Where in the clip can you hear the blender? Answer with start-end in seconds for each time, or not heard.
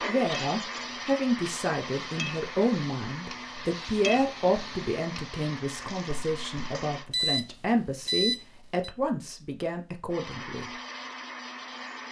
0.0-7.1, 10.1-12.0.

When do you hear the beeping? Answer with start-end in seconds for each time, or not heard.
7.1-8.9.